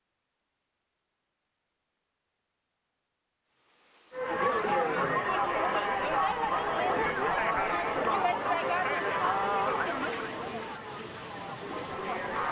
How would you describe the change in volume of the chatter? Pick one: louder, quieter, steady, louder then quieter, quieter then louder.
quieter.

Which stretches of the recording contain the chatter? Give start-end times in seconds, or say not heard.
4.1-12.4.